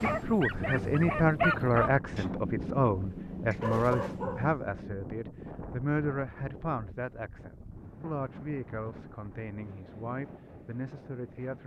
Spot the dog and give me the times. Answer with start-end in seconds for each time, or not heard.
0.0-4.6.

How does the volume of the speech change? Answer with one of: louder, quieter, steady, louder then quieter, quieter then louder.
quieter.